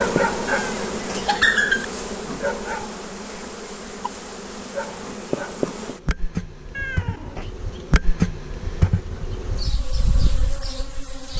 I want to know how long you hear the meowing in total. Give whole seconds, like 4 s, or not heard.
2 s.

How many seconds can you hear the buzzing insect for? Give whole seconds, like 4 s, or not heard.
11 s.